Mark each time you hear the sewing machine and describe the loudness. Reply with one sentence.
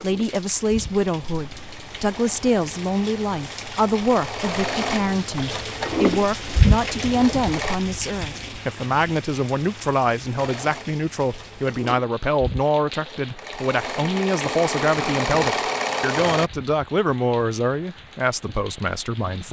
The sewing machine can be heard from 0.0 to 7.8 s, getting louder; and from 10.3 to 16.5 s, getting louder.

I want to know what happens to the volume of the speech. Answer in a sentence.
The volume of the speech stays about the same.